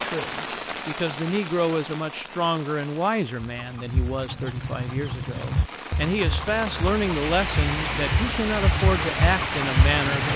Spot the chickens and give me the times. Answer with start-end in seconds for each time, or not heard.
3.5-10.3.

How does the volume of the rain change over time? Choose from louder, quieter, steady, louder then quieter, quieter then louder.
quieter then louder.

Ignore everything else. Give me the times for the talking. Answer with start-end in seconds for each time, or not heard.
0.0-10.3.